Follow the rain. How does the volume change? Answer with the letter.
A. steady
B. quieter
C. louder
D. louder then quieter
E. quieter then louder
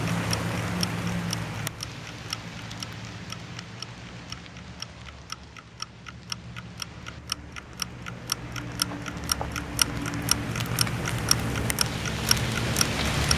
E.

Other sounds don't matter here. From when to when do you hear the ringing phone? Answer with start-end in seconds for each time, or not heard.
not heard.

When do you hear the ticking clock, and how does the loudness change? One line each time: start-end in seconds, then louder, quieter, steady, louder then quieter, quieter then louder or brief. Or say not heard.
0.1-13.3 louder.